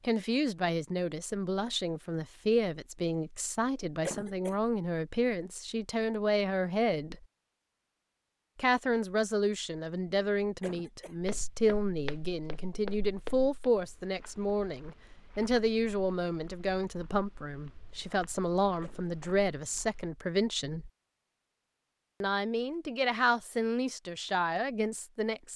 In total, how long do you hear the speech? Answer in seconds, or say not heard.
23 s.